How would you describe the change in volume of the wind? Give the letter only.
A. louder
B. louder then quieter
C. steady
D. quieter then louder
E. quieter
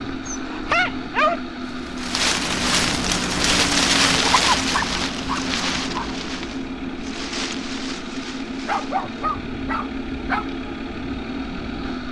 E.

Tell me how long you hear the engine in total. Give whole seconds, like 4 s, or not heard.
12 s.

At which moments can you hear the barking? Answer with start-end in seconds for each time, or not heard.
0.2-1.4, 4.2-6.0, 8.7-10.4.